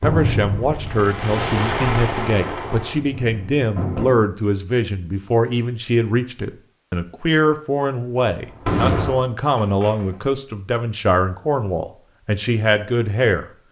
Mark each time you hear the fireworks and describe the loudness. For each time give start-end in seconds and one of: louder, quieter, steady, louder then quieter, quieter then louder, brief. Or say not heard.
0.0-4.2 louder then quieter
8.3-10.2 brief.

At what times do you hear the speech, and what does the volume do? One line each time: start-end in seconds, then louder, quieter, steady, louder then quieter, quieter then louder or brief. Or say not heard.
0.0-13.4 steady.